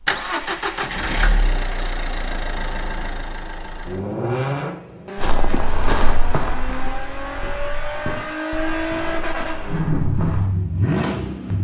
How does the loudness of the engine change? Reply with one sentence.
The loudness of the engine goes down, then up.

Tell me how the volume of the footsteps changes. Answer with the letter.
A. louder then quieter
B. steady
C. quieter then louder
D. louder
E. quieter
E.